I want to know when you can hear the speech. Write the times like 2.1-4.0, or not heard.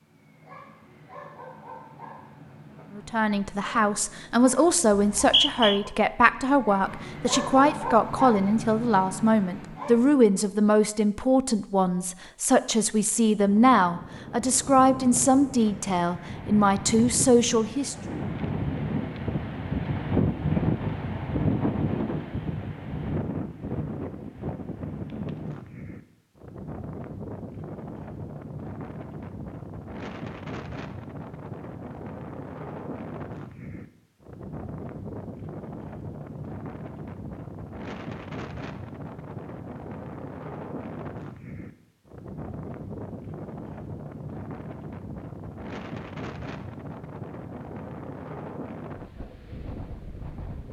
2.9-17.9.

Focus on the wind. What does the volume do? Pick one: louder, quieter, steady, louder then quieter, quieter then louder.
quieter.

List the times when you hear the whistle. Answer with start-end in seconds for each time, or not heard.
4.9-5.8.